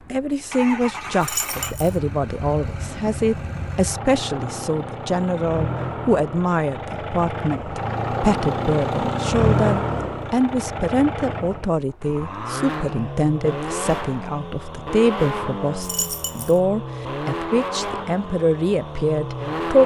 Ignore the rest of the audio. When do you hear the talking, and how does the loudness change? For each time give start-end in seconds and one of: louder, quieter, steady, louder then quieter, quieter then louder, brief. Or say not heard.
0.1-19.8 steady.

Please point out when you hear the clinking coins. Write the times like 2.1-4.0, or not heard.
1.2-2.0, 15.8-16.6.